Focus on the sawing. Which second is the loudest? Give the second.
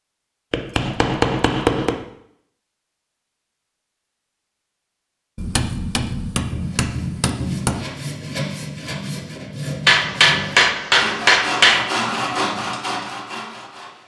12 s.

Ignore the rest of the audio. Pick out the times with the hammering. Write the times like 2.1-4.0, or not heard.
0.5-2.0, 5.3-7.8, 9.8-11.8.